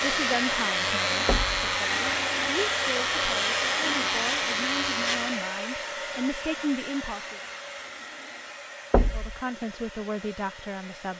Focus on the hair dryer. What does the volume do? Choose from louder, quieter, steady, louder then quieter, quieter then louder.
quieter.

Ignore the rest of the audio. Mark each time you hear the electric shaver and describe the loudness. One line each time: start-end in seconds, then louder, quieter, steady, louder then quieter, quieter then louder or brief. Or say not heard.
0.0-5.5 steady.